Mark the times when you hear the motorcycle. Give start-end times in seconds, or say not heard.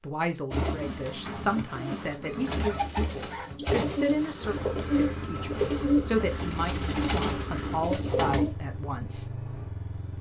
4.4-10.1.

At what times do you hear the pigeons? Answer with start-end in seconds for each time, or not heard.
0.5-8.6.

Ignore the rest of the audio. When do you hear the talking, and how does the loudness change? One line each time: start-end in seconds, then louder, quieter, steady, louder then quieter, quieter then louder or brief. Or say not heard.
0.0-9.4 steady.